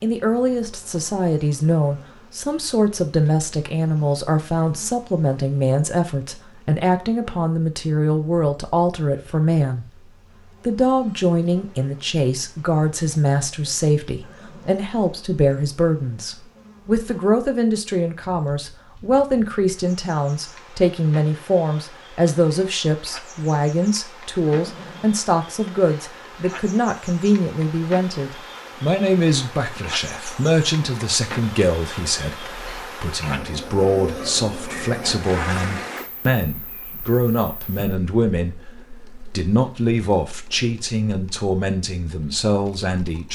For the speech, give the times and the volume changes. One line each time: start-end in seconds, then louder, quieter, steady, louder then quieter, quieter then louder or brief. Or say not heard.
0.0-9.8 steady
10.7-43.3 steady.